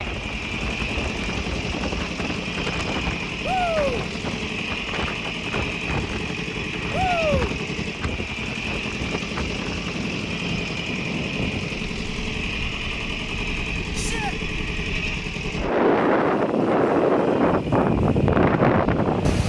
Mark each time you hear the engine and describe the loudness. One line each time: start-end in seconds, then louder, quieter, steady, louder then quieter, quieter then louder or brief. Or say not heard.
0.0-19.4 quieter.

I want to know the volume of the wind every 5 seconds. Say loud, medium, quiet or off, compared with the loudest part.
quiet, quiet, quiet, loud.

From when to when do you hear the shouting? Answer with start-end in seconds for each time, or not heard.
3.4-4.0, 6.9-7.5, 13.9-14.3.